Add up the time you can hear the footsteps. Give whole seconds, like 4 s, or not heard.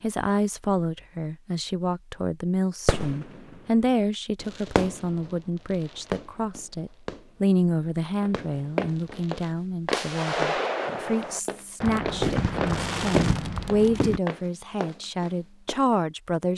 7 s.